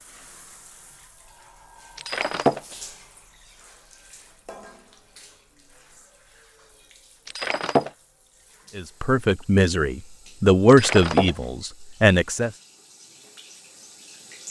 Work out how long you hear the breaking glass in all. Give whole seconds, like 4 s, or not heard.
2 s.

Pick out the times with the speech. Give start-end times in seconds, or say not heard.
8.8-12.5.